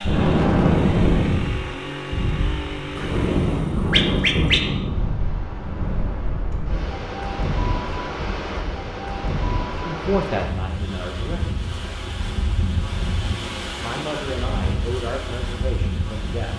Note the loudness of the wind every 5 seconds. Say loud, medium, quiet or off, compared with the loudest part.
loud, medium, medium, medium.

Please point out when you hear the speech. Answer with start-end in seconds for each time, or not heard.
9.8-11.4, 13.8-16.5.